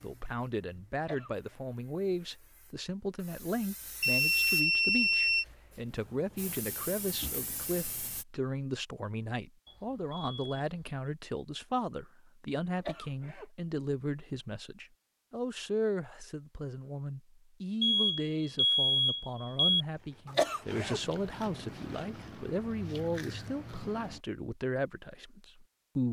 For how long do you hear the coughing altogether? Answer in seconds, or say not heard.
2 s.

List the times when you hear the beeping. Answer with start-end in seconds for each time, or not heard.
4.0-5.5, 9.7-11.0, 17.8-19.9.